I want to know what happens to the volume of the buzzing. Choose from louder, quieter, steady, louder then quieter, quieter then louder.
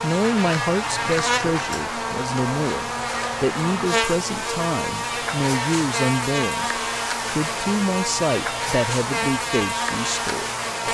steady.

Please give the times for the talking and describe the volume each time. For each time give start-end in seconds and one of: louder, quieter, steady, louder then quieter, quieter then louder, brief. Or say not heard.
0.0-10.8 steady.